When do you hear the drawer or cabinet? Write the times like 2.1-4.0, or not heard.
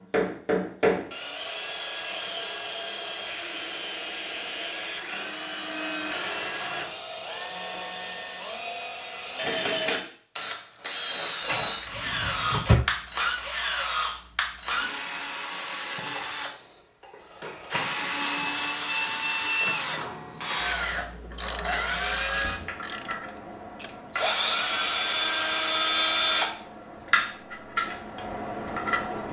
11.4-12.9.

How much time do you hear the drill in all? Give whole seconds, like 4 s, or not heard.
29 s.